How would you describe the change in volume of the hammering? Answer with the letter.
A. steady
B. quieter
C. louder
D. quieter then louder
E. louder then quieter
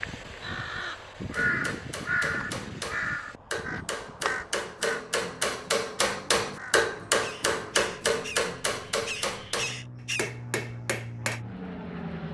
E.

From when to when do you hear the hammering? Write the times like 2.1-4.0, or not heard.
1.3-11.4.